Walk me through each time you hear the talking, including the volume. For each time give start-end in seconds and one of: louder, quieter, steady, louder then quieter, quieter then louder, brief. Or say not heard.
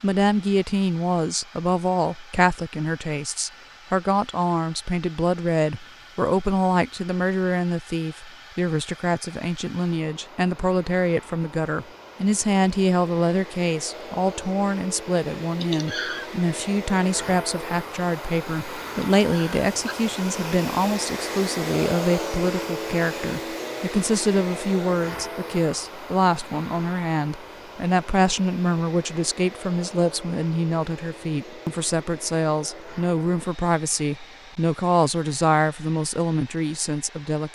0.0-37.5 steady.